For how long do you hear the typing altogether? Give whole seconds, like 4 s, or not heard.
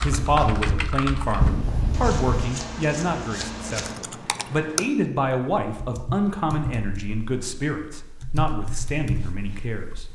8 s.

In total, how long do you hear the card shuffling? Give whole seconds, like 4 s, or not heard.
2 s.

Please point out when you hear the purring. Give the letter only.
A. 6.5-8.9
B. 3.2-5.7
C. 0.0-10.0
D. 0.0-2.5
D.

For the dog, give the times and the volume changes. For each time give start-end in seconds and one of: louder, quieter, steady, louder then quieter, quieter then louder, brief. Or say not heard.
not heard.